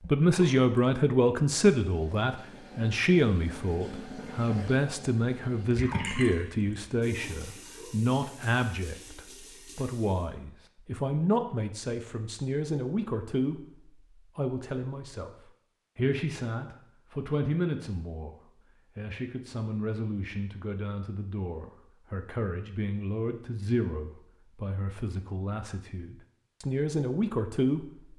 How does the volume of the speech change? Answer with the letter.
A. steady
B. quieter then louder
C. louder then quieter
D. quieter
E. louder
D.